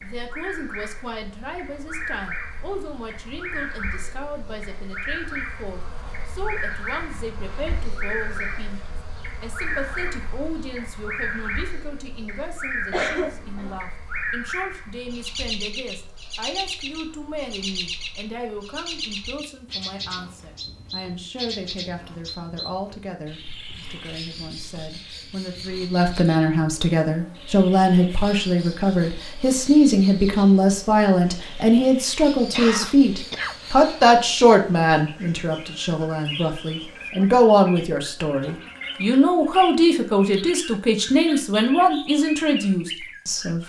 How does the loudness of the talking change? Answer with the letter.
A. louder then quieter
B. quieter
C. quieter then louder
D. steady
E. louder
E.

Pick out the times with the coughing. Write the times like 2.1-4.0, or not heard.
12.9-13.8, 32.5-34.2.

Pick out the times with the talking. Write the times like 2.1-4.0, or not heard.
0.0-43.6.